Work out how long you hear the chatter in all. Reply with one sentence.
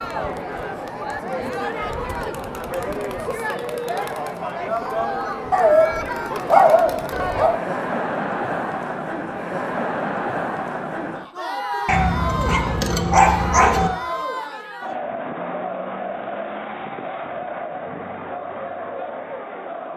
The chatter can be heard for 20 seconds in total.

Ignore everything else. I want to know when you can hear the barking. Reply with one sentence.
The barking can be heard from 5.5 to 7.5 s and from 11.8 to 13.9 s.